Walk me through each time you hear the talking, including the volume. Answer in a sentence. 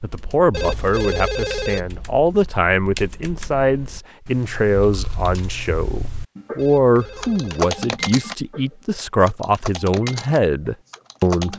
You can hear the talking from 0.0 to 11.5 s, at a steady volume.